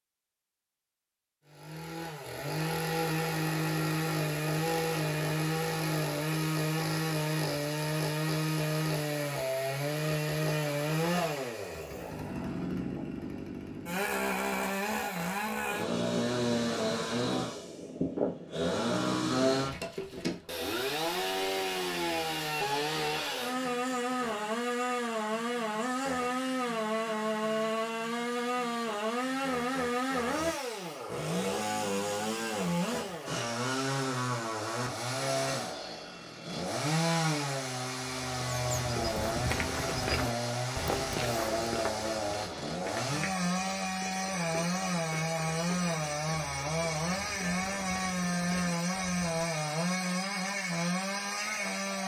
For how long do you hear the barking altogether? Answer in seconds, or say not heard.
not heard.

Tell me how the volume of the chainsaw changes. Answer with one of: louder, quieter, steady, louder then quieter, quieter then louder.
steady.